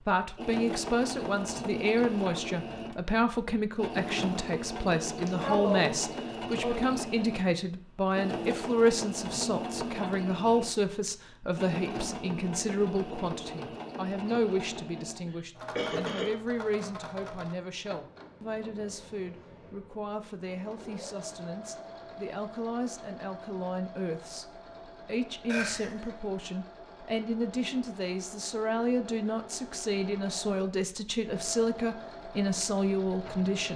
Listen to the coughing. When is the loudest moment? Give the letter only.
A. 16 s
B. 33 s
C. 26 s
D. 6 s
D.